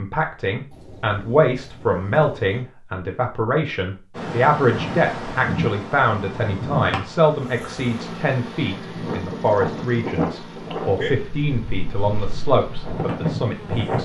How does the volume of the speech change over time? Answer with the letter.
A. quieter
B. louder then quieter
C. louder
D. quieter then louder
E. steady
E.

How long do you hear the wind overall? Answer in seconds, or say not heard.
10 s.